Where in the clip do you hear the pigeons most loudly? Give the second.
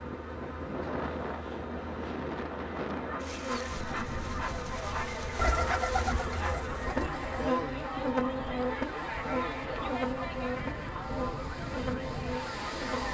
6 s.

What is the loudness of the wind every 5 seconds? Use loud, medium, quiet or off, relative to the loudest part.
loud, medium, loud.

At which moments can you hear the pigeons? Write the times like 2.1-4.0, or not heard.
5.3-7.5.